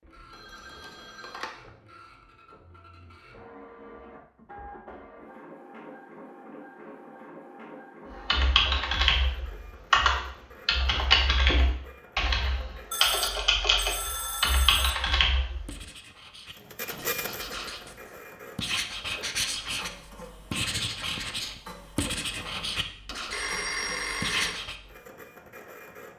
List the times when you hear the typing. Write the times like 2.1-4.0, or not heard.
8.2-15.7.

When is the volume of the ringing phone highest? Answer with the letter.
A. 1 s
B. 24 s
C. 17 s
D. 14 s
B.